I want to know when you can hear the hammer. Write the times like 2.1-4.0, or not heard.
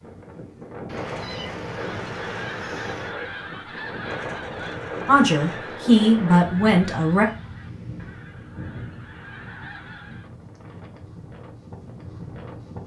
not heard.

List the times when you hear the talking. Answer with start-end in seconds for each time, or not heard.
5.0-7.2.